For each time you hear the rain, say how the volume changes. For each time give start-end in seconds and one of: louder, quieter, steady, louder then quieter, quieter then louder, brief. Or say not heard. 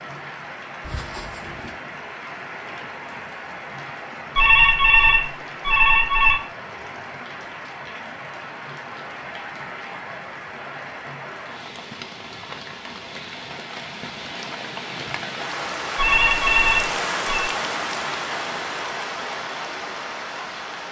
0.0-20.8 louder.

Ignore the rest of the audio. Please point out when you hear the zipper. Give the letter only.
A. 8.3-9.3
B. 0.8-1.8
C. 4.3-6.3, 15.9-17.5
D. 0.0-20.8
B.